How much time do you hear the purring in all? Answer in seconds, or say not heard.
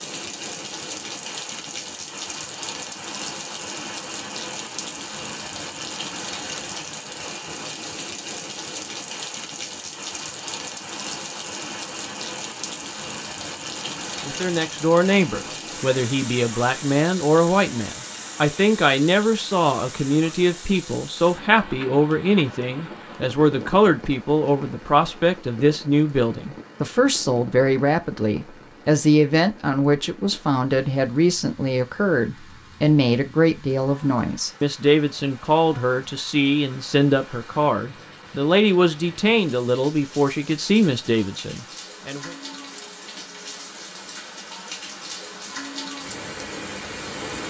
not heard.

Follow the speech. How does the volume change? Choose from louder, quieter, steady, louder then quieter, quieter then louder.
steady.